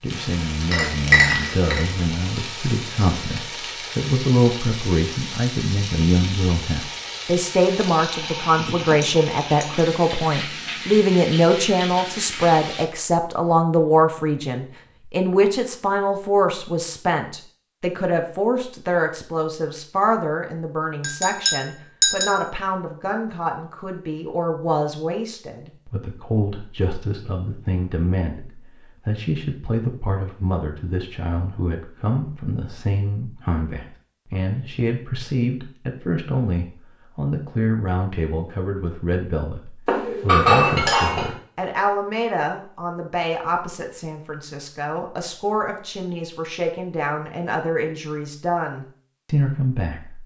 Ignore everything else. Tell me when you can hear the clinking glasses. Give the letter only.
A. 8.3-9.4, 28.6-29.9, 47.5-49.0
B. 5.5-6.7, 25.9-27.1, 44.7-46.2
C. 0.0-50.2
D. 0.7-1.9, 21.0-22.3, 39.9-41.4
D.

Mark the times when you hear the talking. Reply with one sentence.
The talking can be heard from 0.0 to 50.2 s.